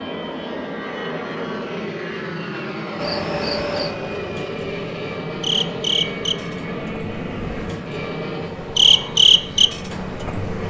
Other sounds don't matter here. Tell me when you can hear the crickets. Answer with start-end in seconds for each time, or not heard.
3.0-10.6.